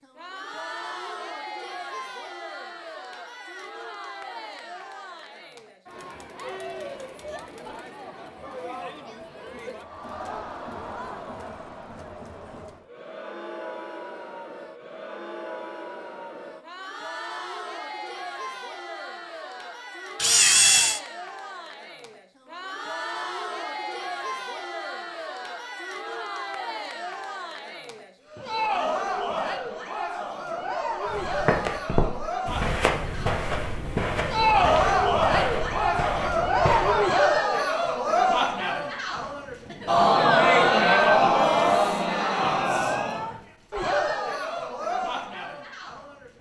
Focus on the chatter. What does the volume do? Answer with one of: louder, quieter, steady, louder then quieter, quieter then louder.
louder.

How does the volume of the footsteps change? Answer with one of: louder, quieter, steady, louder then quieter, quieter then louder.
quieter.